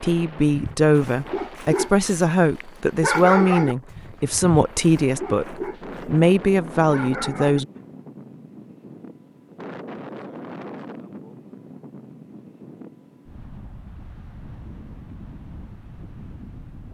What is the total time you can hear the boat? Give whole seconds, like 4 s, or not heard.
not heard.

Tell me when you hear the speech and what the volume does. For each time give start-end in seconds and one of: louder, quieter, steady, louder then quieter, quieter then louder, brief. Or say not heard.
0.0-7.7 steady.